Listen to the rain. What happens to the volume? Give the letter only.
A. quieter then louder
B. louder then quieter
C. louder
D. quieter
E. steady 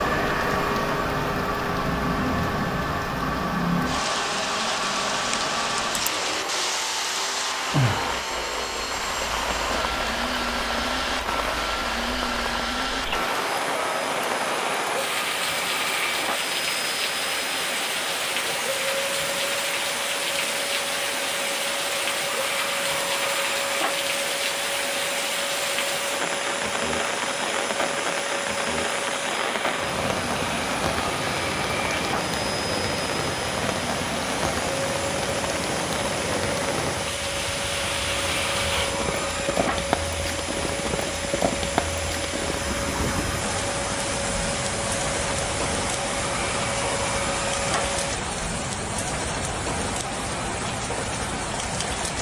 E.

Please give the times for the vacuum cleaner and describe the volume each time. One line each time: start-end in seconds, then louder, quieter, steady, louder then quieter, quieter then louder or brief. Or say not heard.
0.0-48.1 steady.